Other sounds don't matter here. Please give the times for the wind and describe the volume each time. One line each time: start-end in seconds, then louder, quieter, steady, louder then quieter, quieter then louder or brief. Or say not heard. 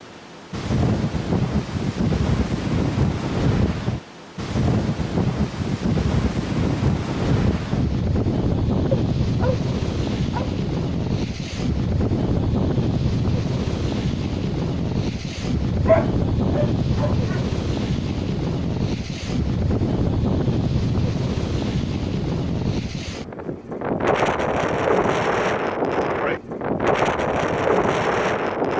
0.0-28.7 steady.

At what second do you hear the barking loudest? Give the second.
16 s.